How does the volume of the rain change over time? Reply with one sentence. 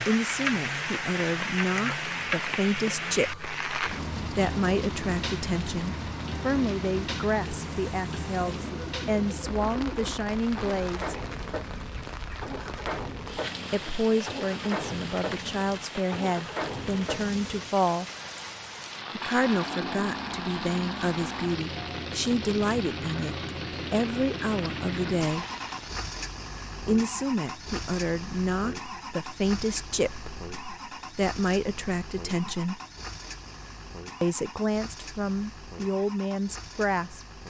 The loudness of the rain goes down.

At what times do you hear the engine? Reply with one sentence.
The engine can be heard from 0.0 to 37.4 s.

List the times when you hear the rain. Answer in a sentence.
The rain can be heard from 0.0 to 26.1 s.